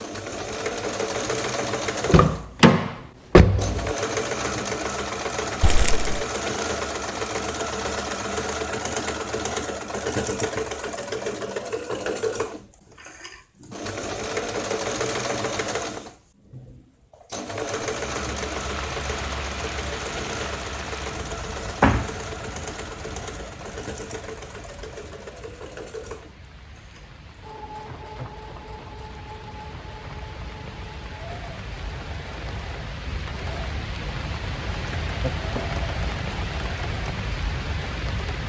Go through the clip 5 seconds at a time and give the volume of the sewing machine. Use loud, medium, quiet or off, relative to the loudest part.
loud, loud, loud, loud, medium, quiet, quiet, medium.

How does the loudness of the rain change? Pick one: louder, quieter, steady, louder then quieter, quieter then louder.
quieter then louder.